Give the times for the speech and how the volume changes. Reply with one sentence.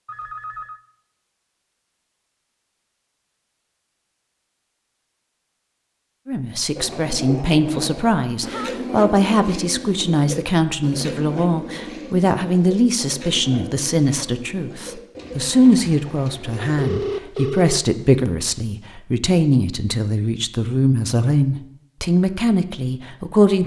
The speech can be heard from 6.2 to 23.6 s, at a steady volume.